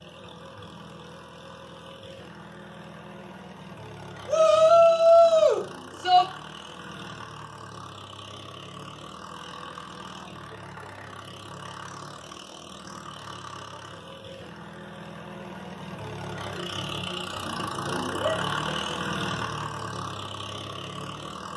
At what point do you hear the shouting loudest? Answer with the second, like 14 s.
5 s.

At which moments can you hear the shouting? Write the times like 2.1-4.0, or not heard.
4.2-6.2, 18.2-18.8.